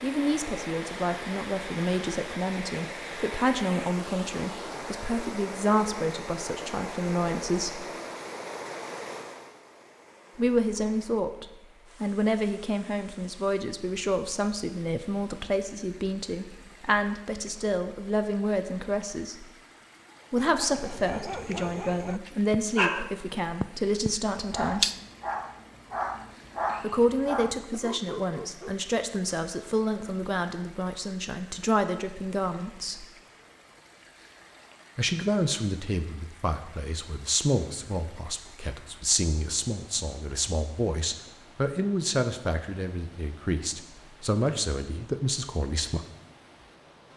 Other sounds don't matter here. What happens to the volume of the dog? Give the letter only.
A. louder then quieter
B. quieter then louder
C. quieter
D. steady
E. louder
A.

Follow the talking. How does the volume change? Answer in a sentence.
The volume of the talking stays about the same.